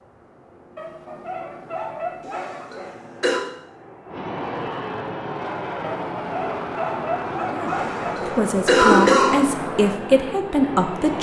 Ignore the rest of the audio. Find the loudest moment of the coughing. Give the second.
9 s.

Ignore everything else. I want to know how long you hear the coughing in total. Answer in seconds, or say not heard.
3 s.